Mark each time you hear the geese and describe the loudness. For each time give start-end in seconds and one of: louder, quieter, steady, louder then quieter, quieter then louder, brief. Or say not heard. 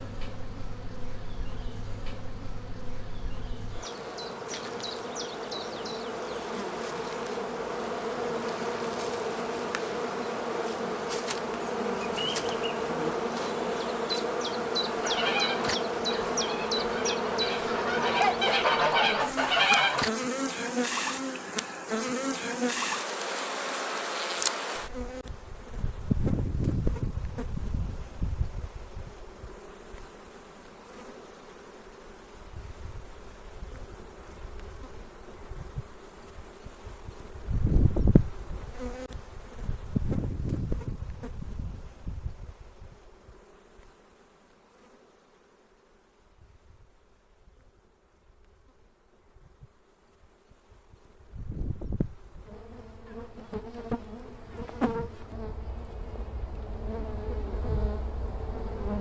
14.8-20.1 quieter then louder.